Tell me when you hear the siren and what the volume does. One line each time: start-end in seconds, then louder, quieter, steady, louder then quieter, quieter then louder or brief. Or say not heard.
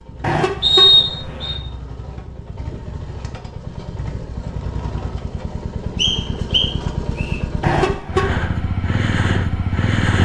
not heard.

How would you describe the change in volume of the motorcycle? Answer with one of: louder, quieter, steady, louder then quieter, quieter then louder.
louder.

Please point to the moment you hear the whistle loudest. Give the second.
1 s.